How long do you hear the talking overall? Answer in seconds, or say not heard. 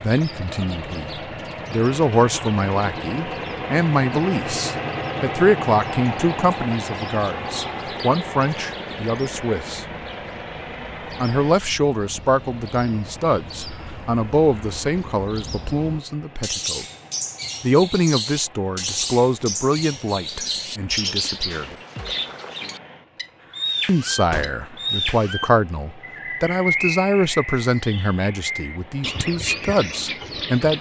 26 s.